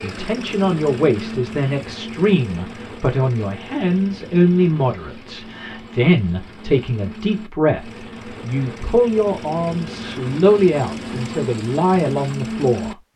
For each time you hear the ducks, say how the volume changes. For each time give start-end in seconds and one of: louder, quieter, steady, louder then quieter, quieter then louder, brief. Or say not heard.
not heard.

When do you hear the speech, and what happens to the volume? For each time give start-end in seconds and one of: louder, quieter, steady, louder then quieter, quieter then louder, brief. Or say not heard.
0.0-12.9 steady.